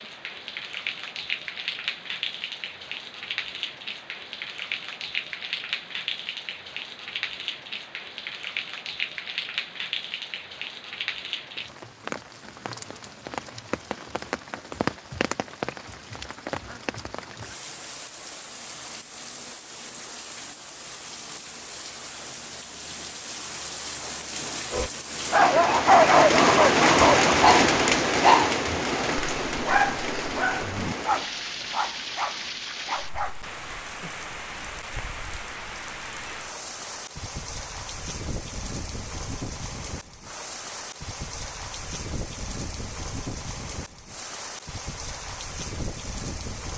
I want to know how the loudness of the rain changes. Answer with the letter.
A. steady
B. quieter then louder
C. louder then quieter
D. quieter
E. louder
C.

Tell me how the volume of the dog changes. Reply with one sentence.
The volume of the dog goes down.